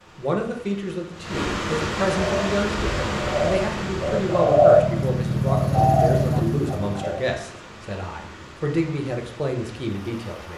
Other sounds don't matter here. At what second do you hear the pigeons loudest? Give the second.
5 s.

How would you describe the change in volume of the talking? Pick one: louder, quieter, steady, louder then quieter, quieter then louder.
steady.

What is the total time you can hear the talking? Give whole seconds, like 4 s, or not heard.
10 s.